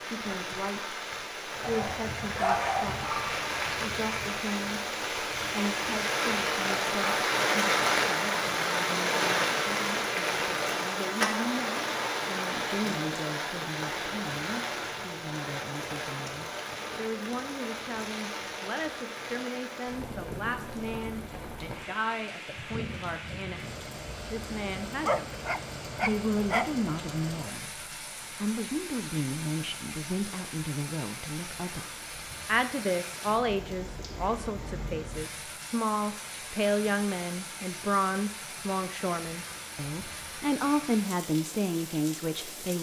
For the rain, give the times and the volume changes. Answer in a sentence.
The rain can be heard from 0.0 to 42.7 s, getting quieter.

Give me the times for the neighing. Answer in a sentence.
The neighing can't be heard in this clip.